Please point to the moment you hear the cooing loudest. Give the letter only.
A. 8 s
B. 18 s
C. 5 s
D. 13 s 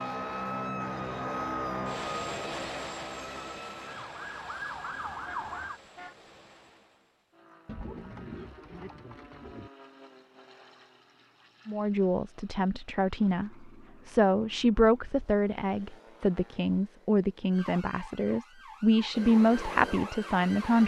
A.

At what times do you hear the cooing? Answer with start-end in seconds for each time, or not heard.
7.7-9.7.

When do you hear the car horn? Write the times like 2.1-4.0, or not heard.
5.2-6.2.